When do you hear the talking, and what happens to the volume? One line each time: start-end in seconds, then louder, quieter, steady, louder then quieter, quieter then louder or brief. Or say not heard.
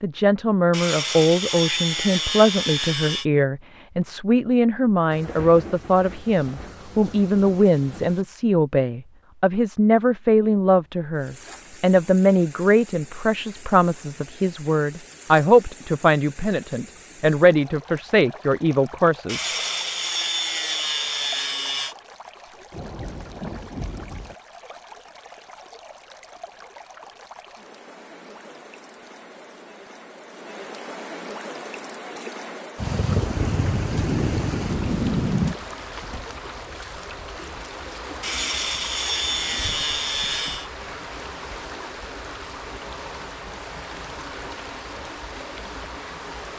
0.0-19.5 steady.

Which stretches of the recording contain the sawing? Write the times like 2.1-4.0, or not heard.
0.7-3.2, 19.2-21.9, 38.2-40.7.